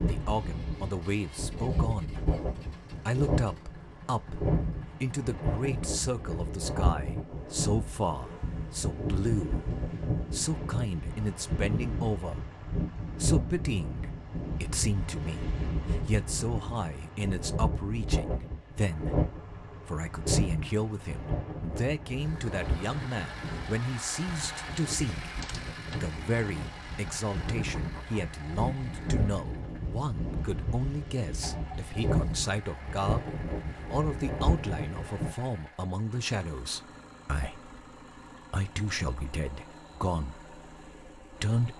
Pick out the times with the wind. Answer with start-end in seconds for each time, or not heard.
0.0-35.3.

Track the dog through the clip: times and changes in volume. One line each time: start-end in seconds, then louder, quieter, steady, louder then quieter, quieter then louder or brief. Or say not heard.
not heard.